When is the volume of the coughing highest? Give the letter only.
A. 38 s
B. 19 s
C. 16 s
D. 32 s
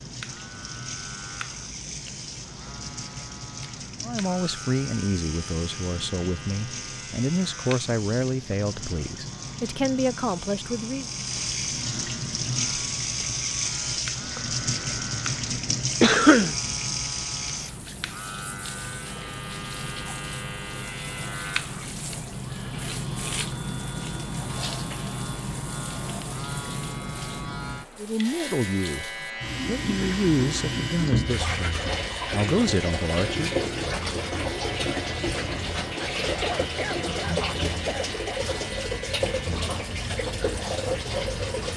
C.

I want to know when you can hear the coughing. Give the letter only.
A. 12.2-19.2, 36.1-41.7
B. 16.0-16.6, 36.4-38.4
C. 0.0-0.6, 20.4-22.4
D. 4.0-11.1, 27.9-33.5
B.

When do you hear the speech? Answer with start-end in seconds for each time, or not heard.
4.0-11.1, 27.9-33.5.